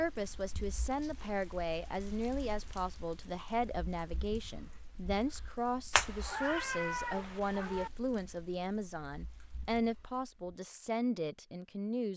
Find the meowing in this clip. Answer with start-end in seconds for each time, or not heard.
5.9-7.9.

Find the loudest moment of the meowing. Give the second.
6 s.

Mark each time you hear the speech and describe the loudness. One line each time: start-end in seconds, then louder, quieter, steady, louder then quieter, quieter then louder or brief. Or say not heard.
0.0-12.1 steady.